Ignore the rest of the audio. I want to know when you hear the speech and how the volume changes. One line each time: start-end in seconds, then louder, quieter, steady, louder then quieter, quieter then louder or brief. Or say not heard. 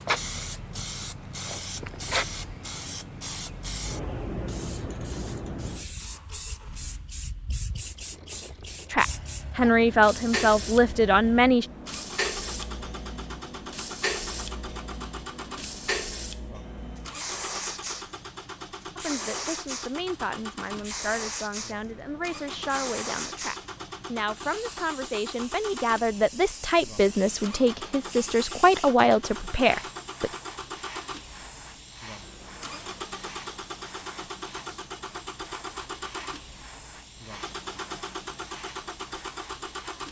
8.9-11.7 brief
18.9-30.3 louder.